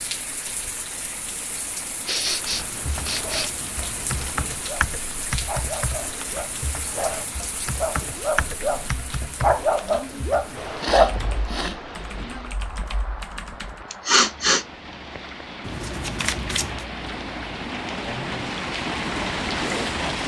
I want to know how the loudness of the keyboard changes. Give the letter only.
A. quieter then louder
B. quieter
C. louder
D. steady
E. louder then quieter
B.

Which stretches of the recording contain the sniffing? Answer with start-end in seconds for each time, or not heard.
2.0-3.5, 10.8-11.8, 13.9-14.7.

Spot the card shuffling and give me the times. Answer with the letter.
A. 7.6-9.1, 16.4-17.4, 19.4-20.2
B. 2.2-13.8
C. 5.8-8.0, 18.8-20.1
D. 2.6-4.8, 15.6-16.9
D.